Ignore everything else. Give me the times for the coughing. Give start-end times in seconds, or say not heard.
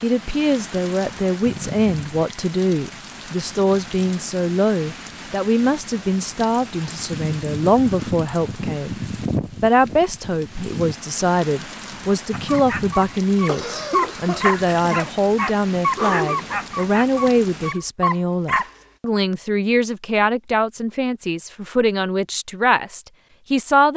13.4-15.2.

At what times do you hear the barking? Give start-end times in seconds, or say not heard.
12.3-18.7.